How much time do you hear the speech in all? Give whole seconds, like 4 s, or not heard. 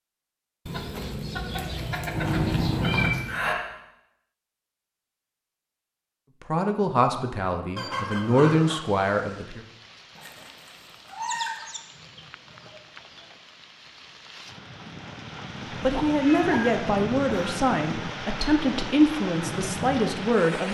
8 s.